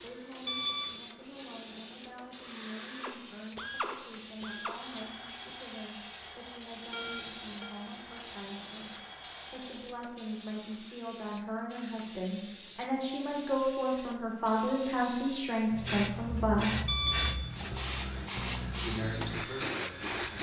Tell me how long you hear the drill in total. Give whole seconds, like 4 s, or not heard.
13 s.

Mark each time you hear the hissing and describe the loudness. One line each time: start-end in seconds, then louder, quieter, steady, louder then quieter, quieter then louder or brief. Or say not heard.
0.0-20.3 louder.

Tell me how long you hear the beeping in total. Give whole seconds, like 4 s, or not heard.
2 s.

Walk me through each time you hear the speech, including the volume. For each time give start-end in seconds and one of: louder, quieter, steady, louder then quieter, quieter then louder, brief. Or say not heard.
0.0-16.7 louder
18.8-20.3 brief.